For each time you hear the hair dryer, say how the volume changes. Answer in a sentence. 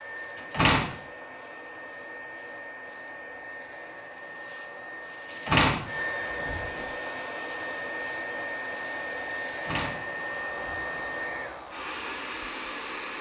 You can hear the hair dryer from 0.0 to 13.1 s, getting louder.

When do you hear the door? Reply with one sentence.
The door can be heard from 0.5 to 0.9 s, from 5.5 to 6.8 s and from 9.6 to 11.0 s.